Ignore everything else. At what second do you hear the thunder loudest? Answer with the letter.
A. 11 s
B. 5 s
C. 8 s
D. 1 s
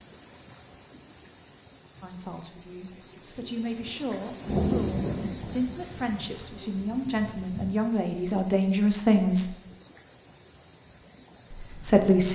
B.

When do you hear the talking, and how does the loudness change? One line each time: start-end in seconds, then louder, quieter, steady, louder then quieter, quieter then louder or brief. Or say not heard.
2.0-9.5 louder
11.5-12.2 brief.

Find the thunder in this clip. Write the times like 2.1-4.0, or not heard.
4.5-7.8.